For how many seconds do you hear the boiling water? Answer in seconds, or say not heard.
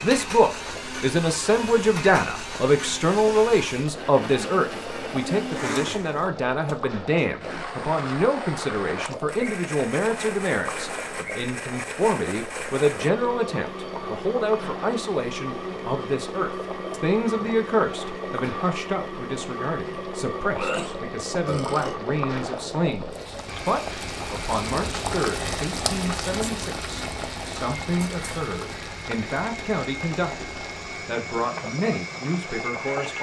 33 s.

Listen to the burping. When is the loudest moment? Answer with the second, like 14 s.
21 s.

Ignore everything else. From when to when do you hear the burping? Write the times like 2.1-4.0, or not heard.
20.5-22.0.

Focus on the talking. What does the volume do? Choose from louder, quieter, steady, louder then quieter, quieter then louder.
quieter.